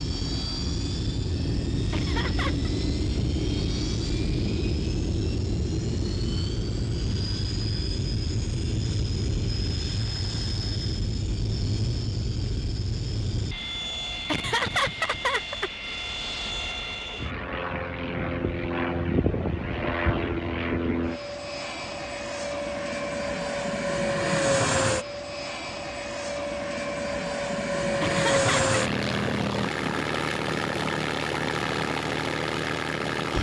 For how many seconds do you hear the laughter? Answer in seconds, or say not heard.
3 s.